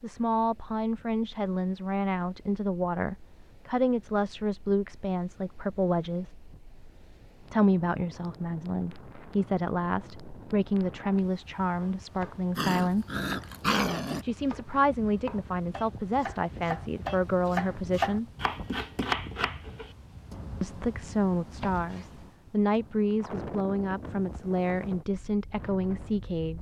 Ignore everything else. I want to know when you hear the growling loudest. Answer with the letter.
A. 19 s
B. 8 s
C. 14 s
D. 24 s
C.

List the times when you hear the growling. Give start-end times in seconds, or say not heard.
12.6-14.2.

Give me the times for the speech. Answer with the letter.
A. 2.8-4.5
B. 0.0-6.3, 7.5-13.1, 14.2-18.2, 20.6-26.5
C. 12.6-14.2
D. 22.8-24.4
B.